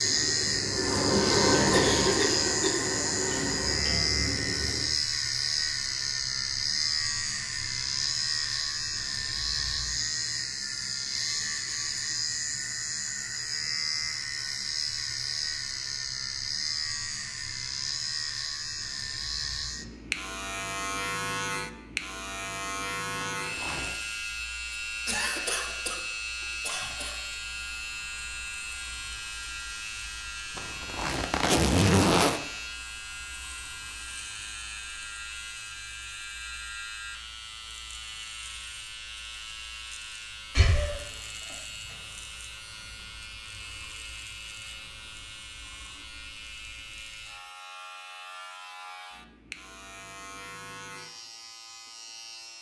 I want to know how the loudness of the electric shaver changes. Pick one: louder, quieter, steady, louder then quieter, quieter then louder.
quieter.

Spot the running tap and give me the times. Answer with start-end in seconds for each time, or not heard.
0.0-5.0.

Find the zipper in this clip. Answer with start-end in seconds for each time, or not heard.
23.2-23.9, 30.6-32.4.